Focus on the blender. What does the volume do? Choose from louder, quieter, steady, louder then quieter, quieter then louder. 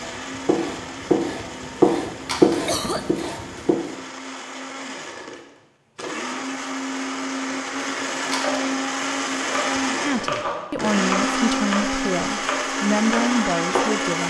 louder.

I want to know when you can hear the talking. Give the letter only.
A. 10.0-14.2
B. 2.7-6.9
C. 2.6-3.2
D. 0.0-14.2
A.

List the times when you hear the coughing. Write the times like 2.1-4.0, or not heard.
2.6-3.2.